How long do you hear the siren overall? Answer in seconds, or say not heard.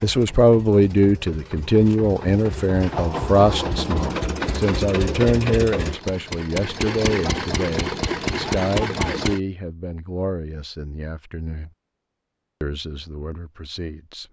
not heard.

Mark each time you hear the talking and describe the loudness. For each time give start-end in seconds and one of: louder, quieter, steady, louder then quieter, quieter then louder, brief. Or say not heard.
0.0-11.7 quieter
12.6-14.2 brief.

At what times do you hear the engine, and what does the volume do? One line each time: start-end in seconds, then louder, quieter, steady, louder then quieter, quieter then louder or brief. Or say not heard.
0.0-9.4 louder.